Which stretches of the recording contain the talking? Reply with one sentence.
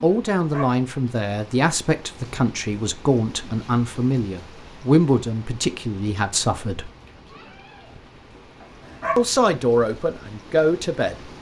The talking can be heard from 0.0 to 6.9 s and from 9.2 to 11.2 s.